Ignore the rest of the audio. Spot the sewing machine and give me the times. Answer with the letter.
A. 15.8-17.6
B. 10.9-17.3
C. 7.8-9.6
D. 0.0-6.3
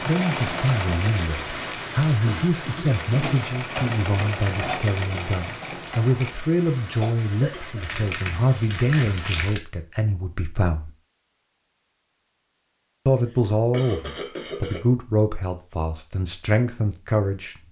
D.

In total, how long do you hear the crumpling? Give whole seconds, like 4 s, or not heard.
2 s.